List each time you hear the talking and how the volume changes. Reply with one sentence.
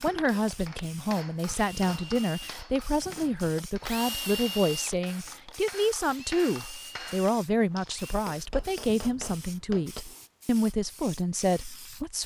You can hear the talking from 0.0 to 12.2 s, at a steady volume.